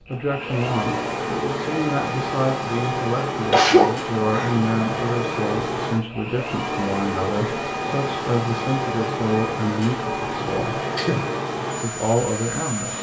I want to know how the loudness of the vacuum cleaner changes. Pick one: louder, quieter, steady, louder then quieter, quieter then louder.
steady.